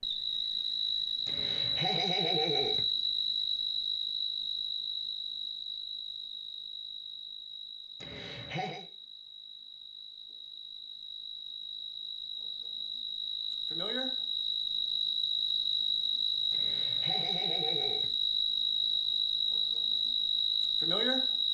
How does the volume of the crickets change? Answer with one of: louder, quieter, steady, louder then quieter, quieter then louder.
quieter then louder.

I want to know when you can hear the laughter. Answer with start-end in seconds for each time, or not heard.
1.2-2.9, 8.0-8.8, 16.5-18.1.